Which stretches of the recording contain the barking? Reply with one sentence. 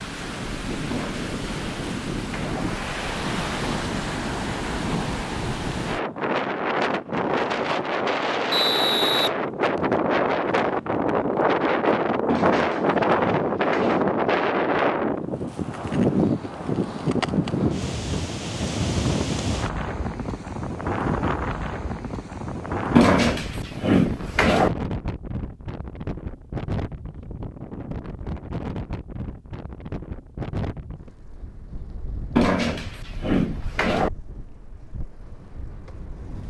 You can hear the barking from 0.9 to 2.6 s, from 12.2 to 14.1 s, from 22.9 to 24.7 s and from 32.4 to 34.1 s.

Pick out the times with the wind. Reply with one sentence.
You can hear the wind from 0.0 to 36.4 s.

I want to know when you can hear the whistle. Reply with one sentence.
The whistle can be heard from 8.5 to 10.0 s.